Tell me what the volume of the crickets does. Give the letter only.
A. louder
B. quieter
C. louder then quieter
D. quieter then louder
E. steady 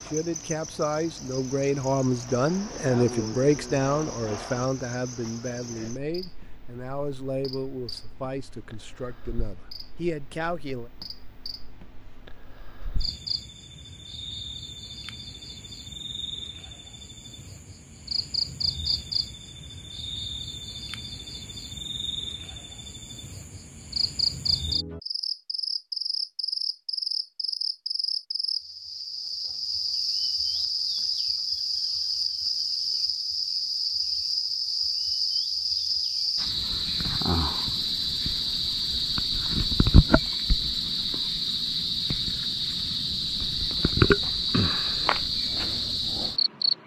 A.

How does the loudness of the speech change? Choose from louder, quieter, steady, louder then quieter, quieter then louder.
quieter.